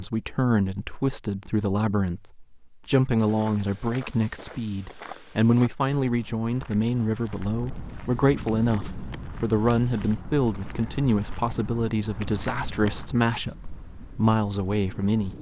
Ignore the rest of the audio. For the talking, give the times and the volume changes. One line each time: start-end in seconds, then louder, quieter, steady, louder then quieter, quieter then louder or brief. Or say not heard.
0.0-15.3 steady.